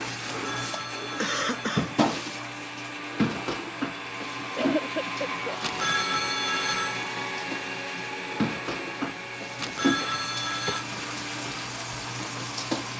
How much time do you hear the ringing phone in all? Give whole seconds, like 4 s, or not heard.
4 s.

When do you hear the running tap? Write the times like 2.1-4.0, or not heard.
0.0-12.9.